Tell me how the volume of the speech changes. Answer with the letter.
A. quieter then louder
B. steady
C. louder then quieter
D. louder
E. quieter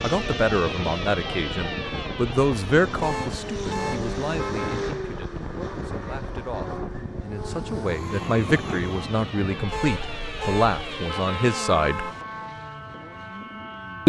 A.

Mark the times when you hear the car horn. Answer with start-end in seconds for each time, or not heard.
3.0-4.8, 9.7-12.2.